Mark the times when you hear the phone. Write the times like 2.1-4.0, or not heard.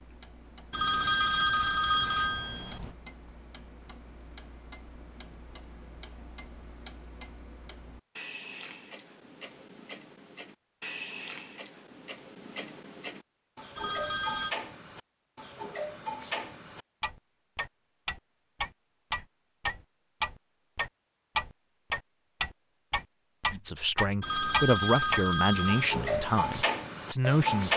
0.7-2.9, 13.8-14.6, 24.2-25.9.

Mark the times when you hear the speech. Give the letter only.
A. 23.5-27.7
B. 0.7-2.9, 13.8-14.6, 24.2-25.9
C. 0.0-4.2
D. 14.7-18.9
A.